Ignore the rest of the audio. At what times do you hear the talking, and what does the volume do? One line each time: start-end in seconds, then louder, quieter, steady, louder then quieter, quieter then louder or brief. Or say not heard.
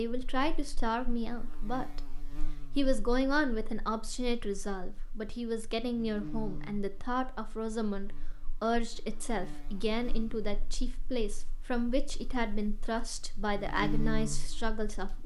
0.0-2.0 brief
2.8-15.2 steady.